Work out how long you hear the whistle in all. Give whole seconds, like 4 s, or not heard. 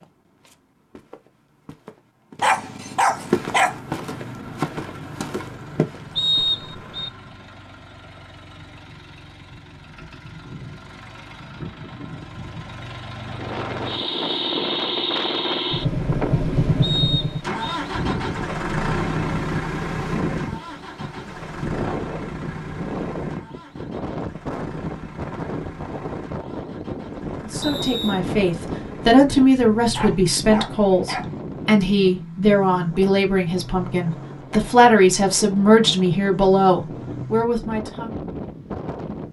2 s.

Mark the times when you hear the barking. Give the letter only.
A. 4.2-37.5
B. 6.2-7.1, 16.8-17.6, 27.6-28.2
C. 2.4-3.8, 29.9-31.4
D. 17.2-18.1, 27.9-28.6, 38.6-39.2
C.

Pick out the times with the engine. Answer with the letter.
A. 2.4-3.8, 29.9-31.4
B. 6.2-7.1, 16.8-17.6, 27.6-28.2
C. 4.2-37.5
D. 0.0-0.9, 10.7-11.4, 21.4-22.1
C.